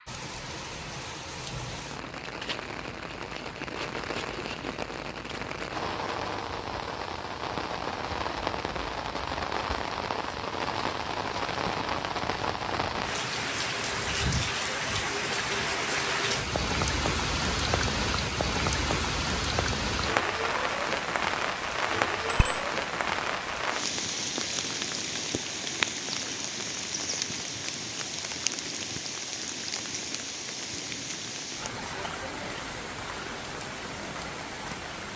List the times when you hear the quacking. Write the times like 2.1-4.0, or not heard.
not heard.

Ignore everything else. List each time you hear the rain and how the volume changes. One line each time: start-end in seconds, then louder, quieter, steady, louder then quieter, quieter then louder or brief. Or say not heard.
0.0-35.1 louder then quieter.